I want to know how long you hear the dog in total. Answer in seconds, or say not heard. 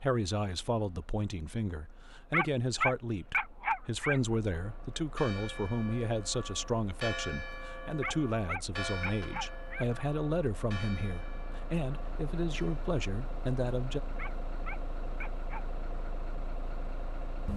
5 s.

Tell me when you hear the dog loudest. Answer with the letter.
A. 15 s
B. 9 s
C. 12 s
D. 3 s
D.